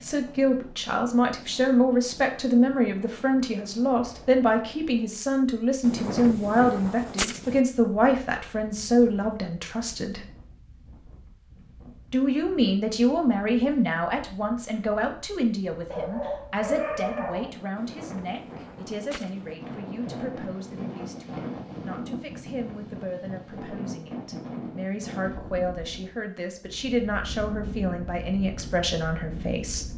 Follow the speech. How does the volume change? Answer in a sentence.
The loudness of the speech goes down, then up.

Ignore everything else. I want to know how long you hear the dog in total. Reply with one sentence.
You can hear the dog for 2 seconds altogether.